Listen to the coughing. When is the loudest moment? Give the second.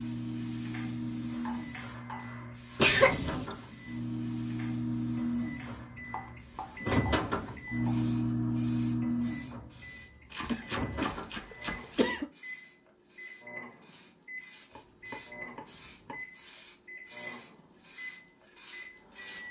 3 s.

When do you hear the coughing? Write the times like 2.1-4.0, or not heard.
2.8-3.5, 10.5-12.3.